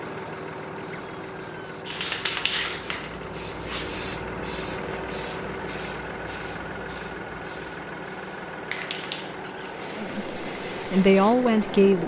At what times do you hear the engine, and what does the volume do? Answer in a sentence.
You can hear the engine from 0.0 to 12.0 s, at a steady volume.